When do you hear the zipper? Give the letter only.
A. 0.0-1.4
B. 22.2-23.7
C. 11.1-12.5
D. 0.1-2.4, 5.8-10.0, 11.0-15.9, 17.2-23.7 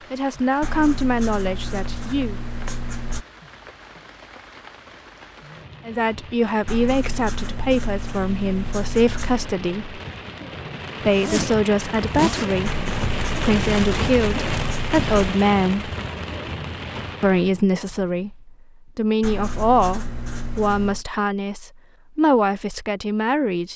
C.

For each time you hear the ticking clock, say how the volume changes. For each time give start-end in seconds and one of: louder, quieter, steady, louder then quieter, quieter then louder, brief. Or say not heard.
not heard.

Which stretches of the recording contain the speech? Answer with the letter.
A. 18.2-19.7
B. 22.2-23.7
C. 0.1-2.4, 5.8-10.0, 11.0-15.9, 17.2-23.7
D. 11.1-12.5
C.